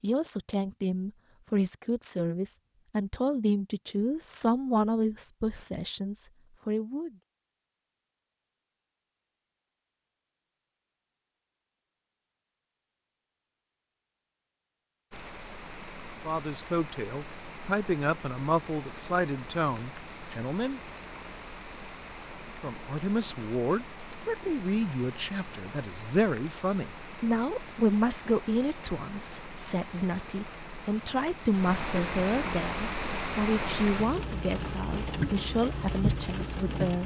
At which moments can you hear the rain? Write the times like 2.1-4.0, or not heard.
15.1-37.0.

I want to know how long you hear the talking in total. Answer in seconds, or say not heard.
26 s.